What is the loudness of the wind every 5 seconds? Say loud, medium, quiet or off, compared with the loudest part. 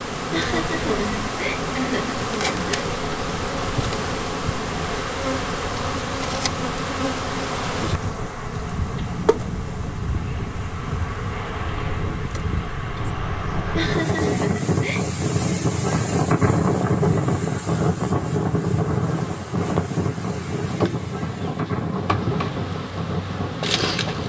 medium, medium, medium, loud, medium.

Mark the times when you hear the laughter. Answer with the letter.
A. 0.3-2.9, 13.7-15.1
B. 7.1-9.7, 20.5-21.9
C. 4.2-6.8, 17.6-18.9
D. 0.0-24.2
A.